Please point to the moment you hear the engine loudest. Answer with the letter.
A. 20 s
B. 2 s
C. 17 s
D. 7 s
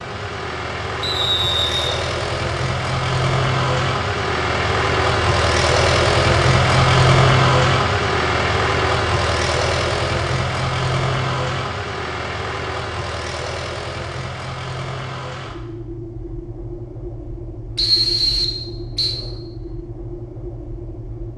D.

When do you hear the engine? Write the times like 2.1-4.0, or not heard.
0.0-21.3.